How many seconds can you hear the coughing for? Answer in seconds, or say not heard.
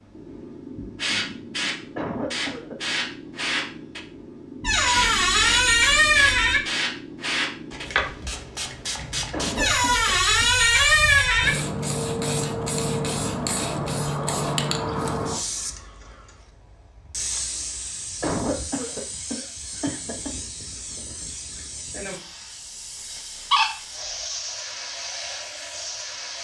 4 s.